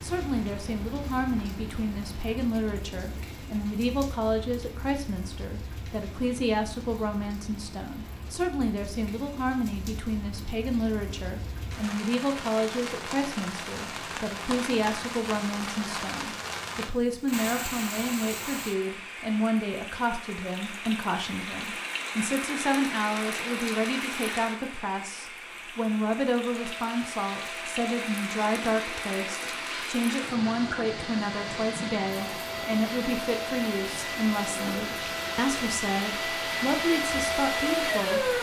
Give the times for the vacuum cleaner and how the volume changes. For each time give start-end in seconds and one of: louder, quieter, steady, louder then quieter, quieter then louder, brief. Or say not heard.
26.5-38.3 louder.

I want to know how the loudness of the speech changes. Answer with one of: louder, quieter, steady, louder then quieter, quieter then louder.
steady.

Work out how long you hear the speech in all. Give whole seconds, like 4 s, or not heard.
38 s.